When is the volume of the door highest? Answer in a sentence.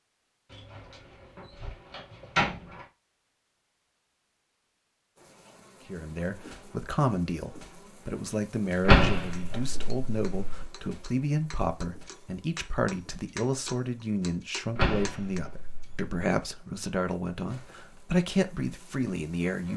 The loudest moment of the door is at 9 seconds.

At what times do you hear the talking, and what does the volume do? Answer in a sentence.
The talking can be heard from 5.8 to 19.7 s, at a steady volume.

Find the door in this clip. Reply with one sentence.
You can hear the door from 0.5 to 2.9 s, from 8.8 to 10.7 s and from 14.8 to 16.1 s.